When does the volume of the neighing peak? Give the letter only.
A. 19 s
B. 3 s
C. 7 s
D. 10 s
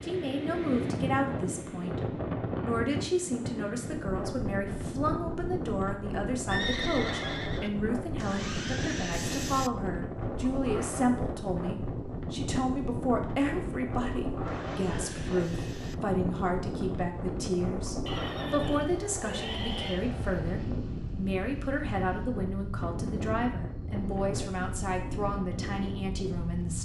C.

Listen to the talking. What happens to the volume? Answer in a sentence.
The loudness of the talking stays about the same.